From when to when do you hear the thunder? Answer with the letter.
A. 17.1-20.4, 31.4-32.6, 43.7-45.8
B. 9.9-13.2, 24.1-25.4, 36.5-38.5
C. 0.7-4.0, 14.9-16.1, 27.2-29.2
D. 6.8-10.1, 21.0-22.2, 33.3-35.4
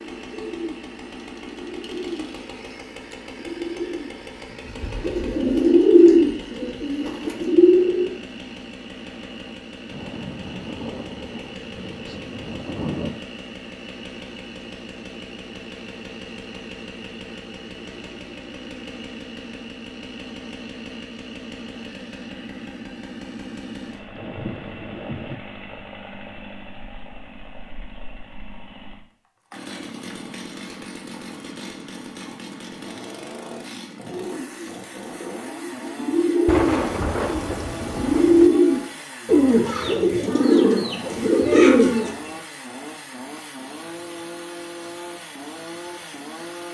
B.